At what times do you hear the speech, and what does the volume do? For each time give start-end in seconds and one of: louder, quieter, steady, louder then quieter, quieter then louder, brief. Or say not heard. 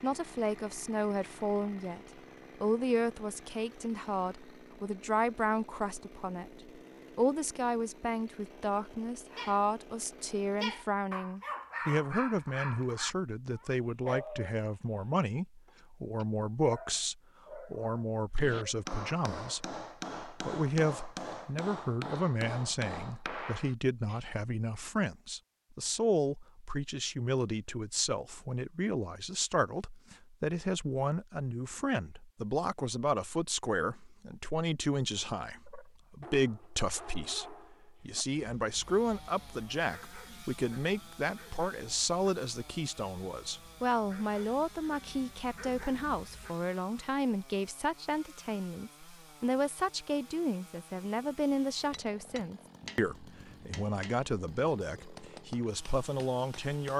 0.0-2.0 brief
2.6-56.9 steady.